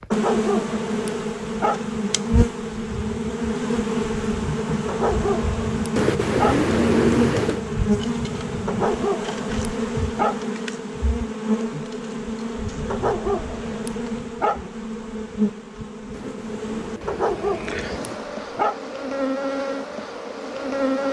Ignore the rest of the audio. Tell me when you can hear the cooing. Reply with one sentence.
The cooing can be heard from 6.0 to 7.7 s and from 16.1 to 18.1 s.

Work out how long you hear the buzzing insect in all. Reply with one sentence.
You can hear the buzzing insect for 21 seconds altogether.